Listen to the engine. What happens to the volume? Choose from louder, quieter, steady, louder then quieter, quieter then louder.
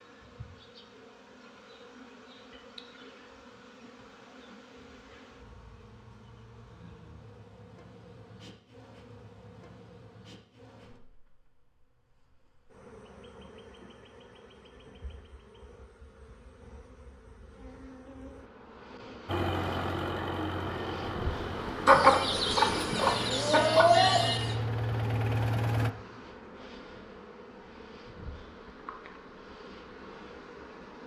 quieter then louder.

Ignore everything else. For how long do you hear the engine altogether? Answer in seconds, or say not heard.
7 s.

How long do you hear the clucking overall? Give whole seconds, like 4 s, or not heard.
3 s.